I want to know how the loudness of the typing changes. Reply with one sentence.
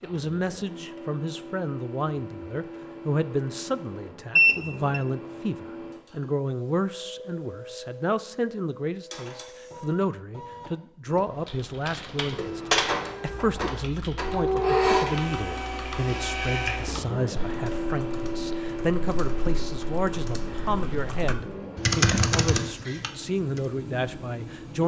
The loudness of the typing goes down, then up.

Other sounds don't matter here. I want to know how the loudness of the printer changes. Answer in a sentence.
The loudness of the printer goes up, then down.